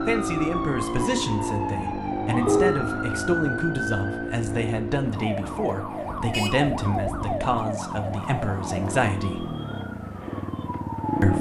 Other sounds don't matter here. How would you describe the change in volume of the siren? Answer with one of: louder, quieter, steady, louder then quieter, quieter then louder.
quieter.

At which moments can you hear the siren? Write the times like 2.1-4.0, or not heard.
0.0-11.3.